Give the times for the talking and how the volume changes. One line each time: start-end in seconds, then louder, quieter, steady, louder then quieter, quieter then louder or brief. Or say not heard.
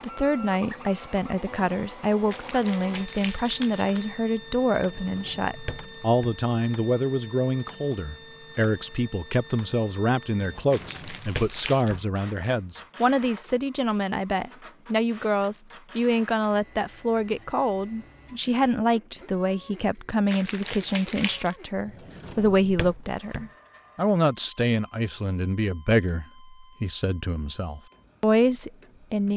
0.0-29.3 steady.